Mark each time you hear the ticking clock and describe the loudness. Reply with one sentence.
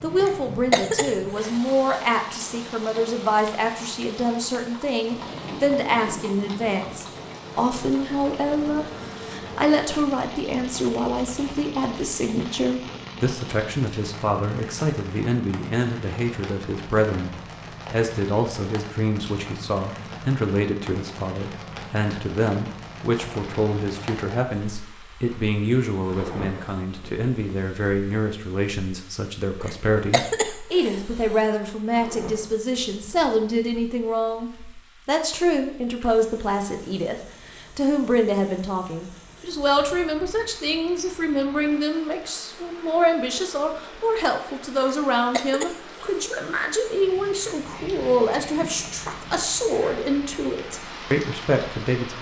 You can't hear the ticking clock here.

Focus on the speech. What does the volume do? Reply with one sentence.
The volume of the speech stays about the same.